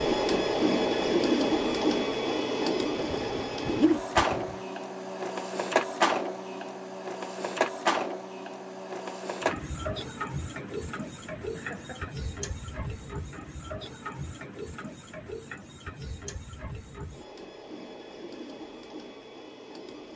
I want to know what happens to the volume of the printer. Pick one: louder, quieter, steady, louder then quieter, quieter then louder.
quieter.